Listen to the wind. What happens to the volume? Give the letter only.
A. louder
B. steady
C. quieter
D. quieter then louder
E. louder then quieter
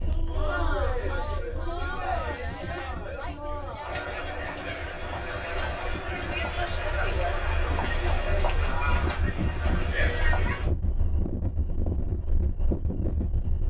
A.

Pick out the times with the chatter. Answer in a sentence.
You can hear the chatter from 0.1 to 10.7 s.